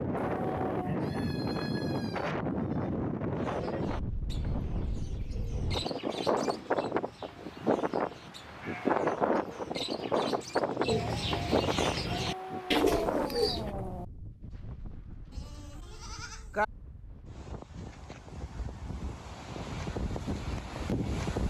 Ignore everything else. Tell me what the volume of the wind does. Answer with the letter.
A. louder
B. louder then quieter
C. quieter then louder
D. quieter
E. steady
D.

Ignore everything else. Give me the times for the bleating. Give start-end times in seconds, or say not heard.
0.9-2.9, 8.6-9.0, 15.3-16.6.